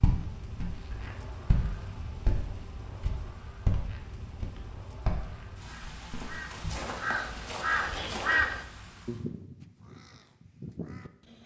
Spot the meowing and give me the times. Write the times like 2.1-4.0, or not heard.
not heard.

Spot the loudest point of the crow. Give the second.
8 s.